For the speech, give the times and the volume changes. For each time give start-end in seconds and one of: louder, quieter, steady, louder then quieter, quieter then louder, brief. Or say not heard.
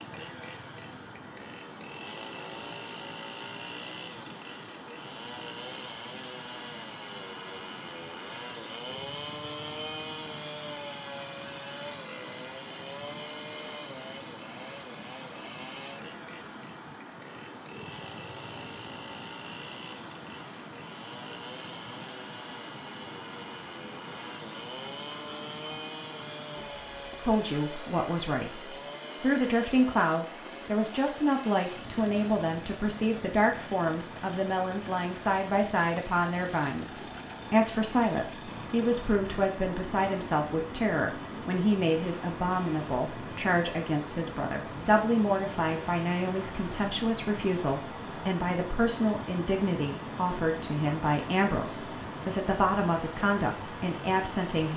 27.2-54.7 steady.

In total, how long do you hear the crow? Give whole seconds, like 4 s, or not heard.
not heard.